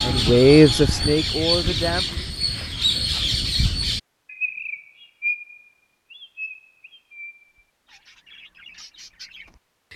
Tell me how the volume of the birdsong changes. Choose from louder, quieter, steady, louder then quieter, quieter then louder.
quieter.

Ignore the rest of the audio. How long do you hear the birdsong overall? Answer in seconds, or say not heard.
10 s.